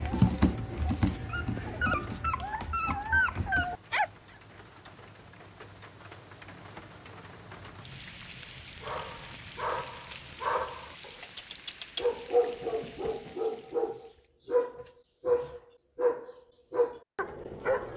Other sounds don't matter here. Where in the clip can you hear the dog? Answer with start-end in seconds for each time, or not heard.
0.0-4.1, 8.8-17.9.